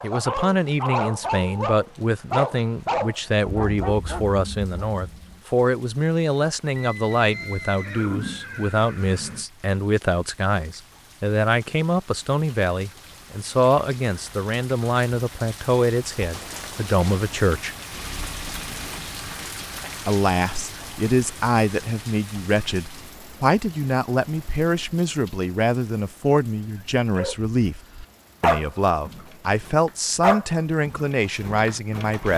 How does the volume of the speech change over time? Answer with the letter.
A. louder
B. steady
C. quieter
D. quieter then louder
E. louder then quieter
B.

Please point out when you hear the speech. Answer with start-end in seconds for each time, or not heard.
0.0-17.8, 20.1-27.8, 28.4-32.3.